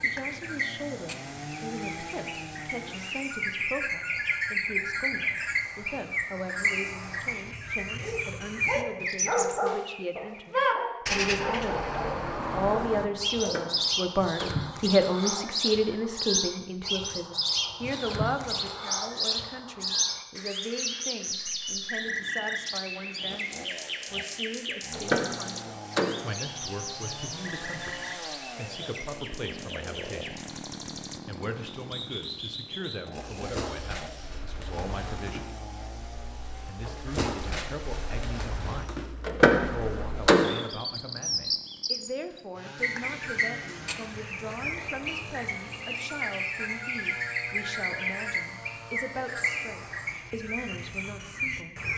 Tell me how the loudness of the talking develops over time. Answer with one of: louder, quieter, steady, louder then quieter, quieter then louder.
louder then quieter.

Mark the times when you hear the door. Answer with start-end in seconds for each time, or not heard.
13.3-14.6, 24.9-26.4, 39.2-40.6.